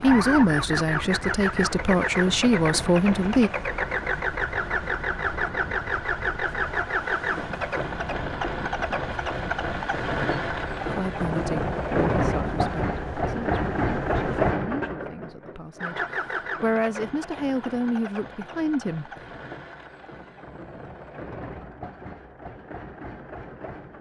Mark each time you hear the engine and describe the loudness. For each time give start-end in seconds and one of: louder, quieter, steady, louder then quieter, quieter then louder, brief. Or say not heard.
0.0-23.9 quieter.